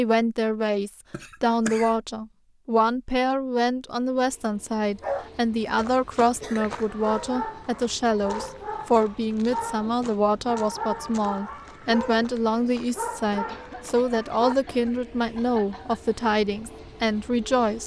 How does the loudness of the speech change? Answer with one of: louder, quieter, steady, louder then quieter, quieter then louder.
steady.